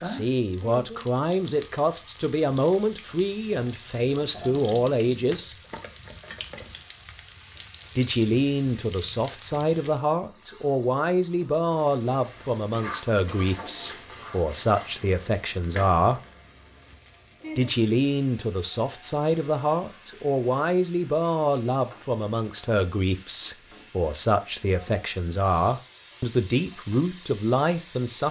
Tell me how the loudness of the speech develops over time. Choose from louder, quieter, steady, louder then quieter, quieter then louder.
steady.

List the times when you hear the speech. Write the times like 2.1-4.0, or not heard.
0.0-5.5, 8.0-16.2, 17.6-28.2.